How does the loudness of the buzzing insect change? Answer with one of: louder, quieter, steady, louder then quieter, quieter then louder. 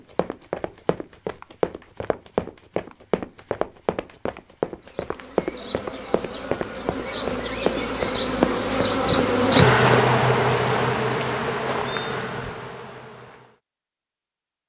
louder then quieter.